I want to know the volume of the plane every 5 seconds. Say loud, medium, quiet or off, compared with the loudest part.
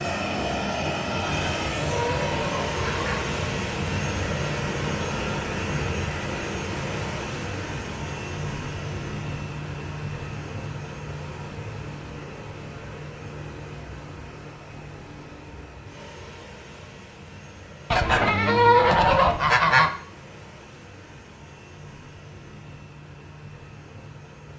loud, loud, medium, quiet, quiet.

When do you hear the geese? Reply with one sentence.
The geese can be heard from 1.4 to 3.2 s and from 17.9 to 19.9 s.